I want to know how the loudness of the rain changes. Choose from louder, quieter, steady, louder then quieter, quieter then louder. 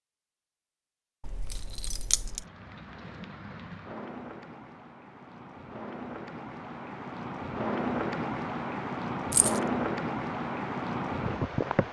louder.